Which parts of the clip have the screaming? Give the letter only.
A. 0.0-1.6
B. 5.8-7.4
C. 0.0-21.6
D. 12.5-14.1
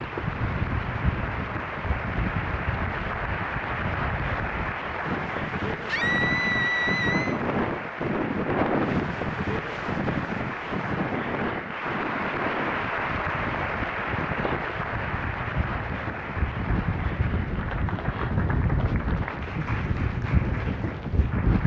B.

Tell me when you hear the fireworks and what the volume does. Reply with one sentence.
The fireworks can't be heard in this clip.